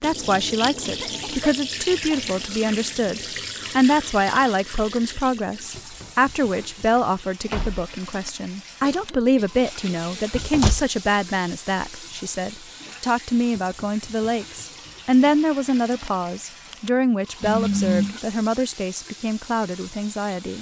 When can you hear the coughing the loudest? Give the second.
18 s.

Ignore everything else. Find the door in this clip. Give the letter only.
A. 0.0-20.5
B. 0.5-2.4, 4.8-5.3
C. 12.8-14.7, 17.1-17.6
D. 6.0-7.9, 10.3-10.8
D.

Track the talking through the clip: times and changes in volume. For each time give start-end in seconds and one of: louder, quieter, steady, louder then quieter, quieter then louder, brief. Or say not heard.
0.0-20.5 steady.